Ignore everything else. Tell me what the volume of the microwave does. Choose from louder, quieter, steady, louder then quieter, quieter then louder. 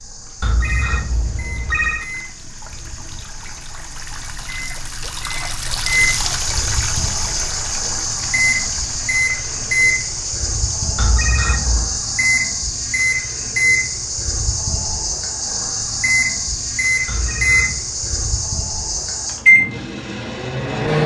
louder.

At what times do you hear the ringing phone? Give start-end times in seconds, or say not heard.
0.4-2.0, 10.9-12.0, 17.1-17.8.